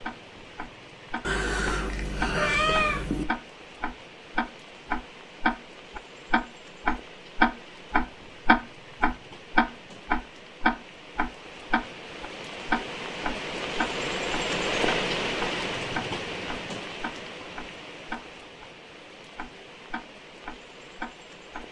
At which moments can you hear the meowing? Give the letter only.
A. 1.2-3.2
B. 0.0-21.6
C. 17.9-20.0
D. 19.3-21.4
A.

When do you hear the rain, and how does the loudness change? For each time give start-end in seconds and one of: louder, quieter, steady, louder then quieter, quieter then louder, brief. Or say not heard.
0.0-21.6 louder then quieter.